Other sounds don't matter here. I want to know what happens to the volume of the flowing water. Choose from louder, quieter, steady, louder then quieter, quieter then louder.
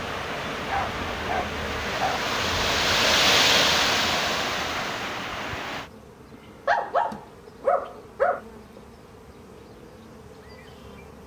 louder then quieter.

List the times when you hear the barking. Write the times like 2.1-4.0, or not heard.
0.7-2.2, 6.7-8.4.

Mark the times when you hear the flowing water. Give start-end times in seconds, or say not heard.
0.0-5.9.